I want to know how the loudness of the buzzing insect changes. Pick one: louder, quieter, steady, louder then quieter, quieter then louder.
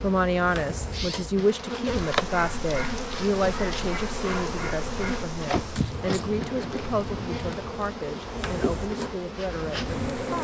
steady.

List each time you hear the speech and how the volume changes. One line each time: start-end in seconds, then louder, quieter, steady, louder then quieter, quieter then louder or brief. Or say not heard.
0.0-10.3 quieter.